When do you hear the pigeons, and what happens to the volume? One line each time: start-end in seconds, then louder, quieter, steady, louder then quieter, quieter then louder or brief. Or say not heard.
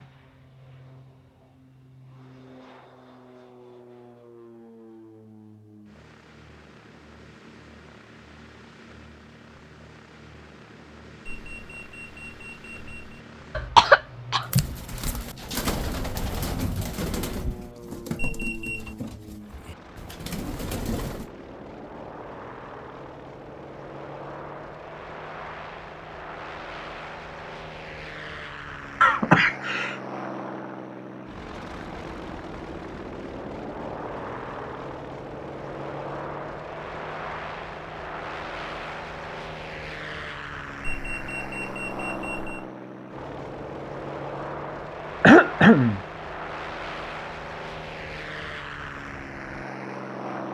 14.4-21.3 quieter then louder.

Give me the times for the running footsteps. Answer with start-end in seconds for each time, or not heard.
not heard.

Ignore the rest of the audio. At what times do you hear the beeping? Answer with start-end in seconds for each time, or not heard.
11.2-13.2, 18.1-18.9, 40.8-42.6.